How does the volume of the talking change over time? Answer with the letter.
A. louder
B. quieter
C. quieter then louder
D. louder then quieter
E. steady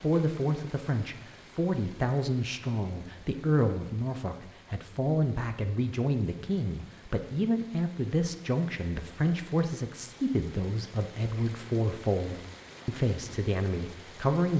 E.